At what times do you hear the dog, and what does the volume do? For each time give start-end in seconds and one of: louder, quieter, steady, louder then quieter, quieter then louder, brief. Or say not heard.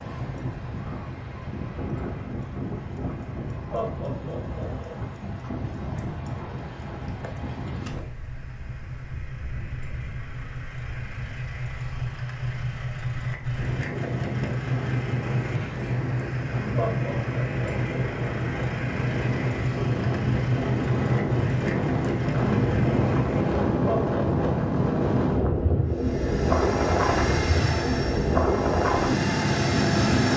not heard.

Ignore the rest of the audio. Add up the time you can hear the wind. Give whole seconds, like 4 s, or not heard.
30 s.